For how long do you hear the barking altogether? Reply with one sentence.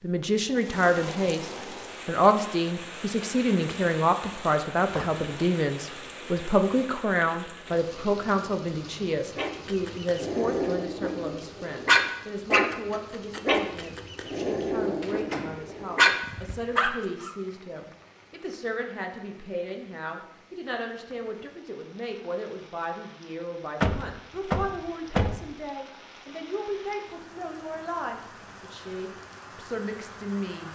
You can hear the barking for 8 seconds altogether.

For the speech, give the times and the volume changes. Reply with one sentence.
The speech can be heard from 0.0 to 30.6 s, getting quieter.